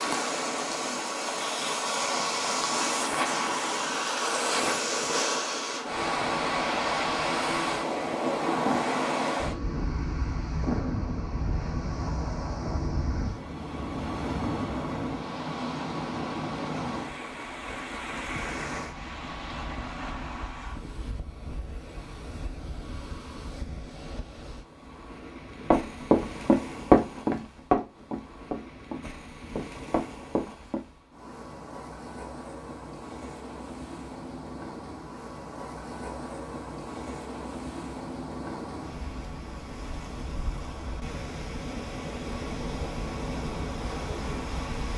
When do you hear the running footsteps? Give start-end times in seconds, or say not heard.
25.7-30.8.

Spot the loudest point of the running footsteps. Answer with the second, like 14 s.
27 s.